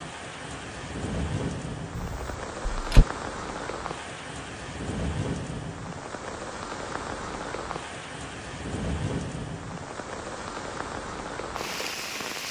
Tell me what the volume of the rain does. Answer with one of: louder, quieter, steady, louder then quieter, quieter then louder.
steady.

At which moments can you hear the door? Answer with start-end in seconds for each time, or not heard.
1.9-3.0.